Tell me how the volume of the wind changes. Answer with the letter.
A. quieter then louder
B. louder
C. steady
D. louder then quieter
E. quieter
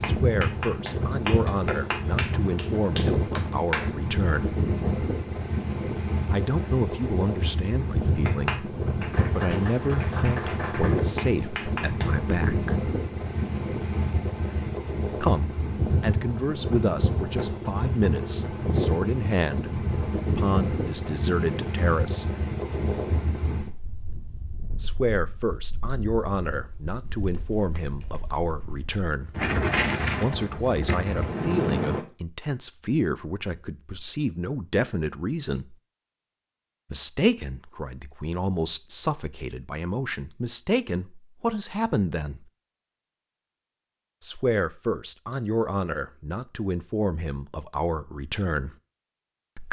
C.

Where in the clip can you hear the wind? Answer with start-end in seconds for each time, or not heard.
0.0-32.0.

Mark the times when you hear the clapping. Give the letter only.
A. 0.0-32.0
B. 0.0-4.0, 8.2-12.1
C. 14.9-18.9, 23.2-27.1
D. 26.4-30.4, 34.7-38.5
B.